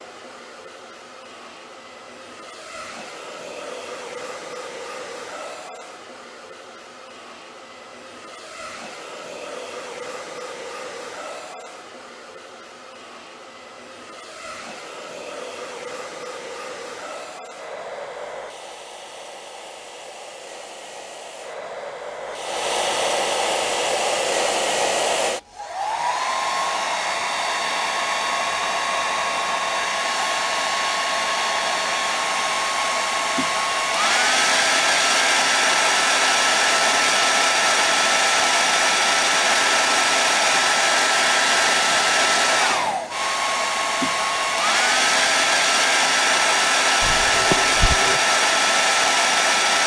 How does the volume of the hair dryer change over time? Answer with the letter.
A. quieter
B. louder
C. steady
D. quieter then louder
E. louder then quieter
B.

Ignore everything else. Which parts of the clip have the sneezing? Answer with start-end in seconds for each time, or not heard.
47.0-48.2.